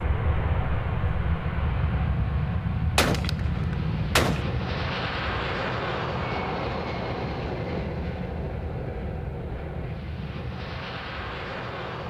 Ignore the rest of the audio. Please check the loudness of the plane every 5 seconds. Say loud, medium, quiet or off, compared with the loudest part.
loud, loud, medium.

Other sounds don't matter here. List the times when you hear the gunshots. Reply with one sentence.
You can hear the gunshots from 3.0 to 4.5 s.